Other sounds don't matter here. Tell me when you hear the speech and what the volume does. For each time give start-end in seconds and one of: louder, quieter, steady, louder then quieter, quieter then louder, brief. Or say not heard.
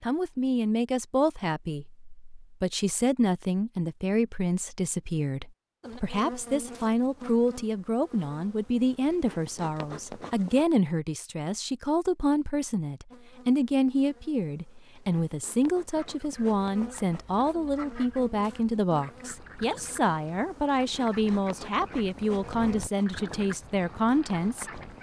0.0-24.7 steady.